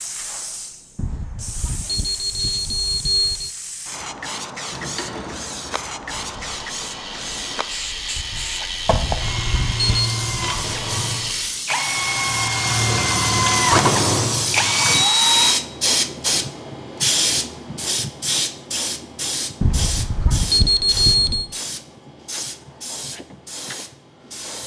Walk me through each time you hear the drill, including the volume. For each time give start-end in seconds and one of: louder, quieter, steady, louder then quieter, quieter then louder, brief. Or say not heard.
9.2-15.6 louder.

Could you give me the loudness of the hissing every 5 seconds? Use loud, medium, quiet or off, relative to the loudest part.
medium, medium, loud, loud, medium.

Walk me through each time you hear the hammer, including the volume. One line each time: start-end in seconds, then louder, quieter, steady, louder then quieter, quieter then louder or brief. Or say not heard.
not heard.